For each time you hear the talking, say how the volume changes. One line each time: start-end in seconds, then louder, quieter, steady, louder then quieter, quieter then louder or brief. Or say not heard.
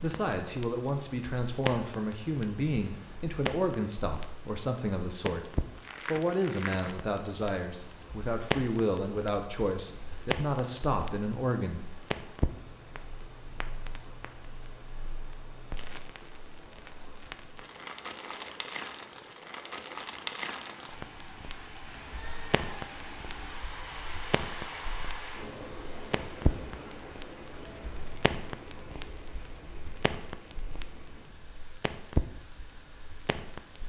0.0-11.8 steady.